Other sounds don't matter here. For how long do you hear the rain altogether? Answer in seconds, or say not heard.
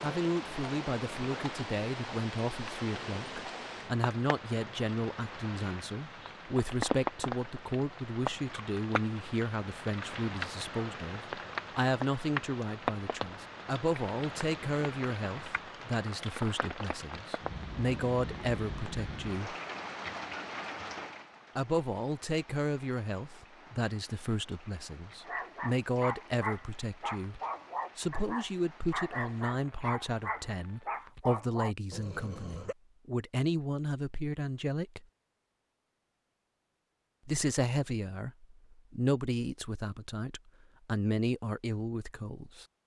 31 s.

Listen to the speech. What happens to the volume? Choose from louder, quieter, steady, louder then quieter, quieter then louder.
steady.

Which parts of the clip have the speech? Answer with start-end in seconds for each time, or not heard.
0.0-19.6, 21.6-35.0, 37.2-42.6.